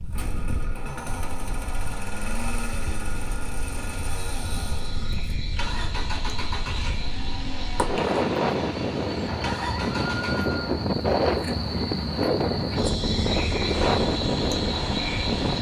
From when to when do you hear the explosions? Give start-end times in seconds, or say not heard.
not heard.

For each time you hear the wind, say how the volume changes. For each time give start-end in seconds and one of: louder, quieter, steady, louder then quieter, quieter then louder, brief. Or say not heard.
0.0-15.5 louder.